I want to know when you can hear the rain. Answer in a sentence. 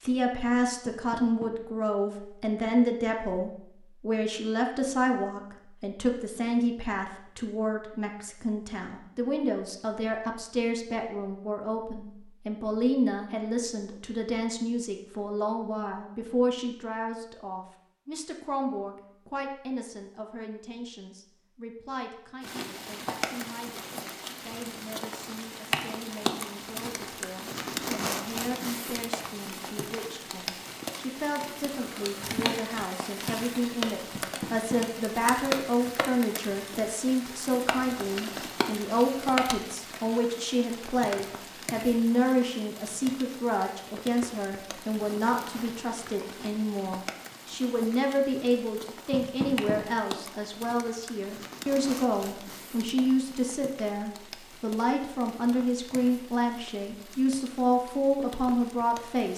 The rain can be heard from 22.4 to 59.3 s.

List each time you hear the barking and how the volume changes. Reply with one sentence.
You can't hear the barking here.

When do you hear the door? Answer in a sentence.
You can hear the door from 0.8 to 1.5 s, from 34.1 to 34.8 s and from 49.1 to 49.8 s.